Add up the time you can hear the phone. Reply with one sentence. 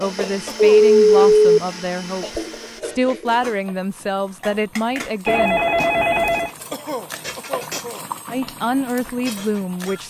The phone can be heard for 2 seconds in total.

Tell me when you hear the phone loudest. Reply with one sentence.
The loudest moment of the phone is at 1 second.